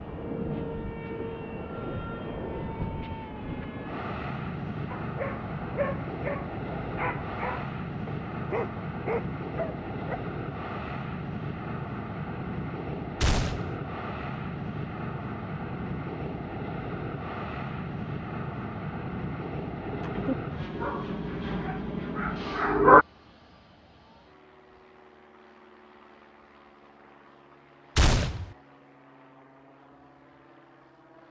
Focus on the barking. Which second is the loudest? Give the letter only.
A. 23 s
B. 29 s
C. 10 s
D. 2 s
A.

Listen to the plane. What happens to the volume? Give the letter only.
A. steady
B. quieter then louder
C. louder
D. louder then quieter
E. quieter
E.